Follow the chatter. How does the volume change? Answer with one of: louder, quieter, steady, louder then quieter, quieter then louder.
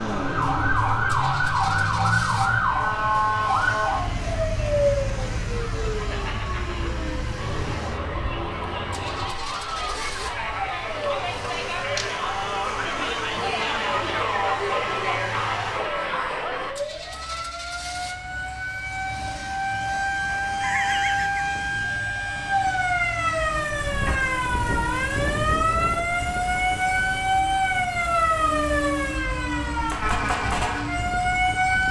louder.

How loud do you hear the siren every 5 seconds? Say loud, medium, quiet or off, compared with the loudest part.
loud, medium, medium, medium, loud, loud, loud.